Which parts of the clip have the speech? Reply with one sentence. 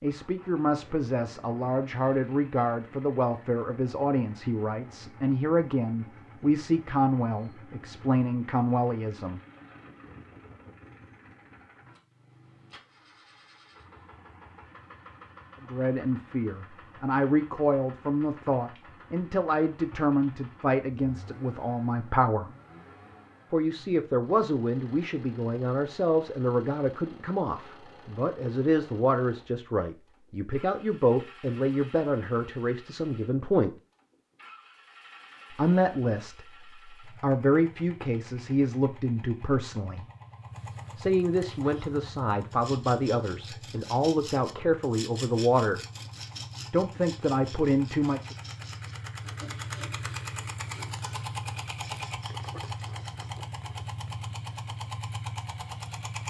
The speech can be heard from 0.0 to 9.4 s, from 15.7 to 22.5 s, from 23.5 to 33.8 s, from 35.5 to 40.0 s, from 41.0 to 45.8 s and from 46.7 to 48.4 s.